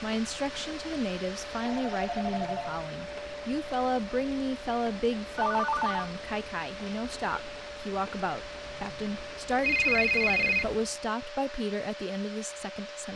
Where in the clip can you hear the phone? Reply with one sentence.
The phone can be heard from 1.6 to 2.6 s, from 5.3 to 6.1 s and from 9.6 to 10.8 s.